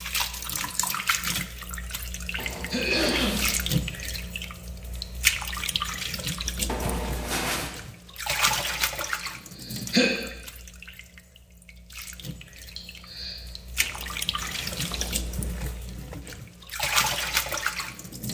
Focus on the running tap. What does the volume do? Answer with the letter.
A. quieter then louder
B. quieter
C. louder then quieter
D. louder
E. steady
A.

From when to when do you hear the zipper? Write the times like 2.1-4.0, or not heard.
2.4-3.5, 6.7-7.7, 13.8-15.4.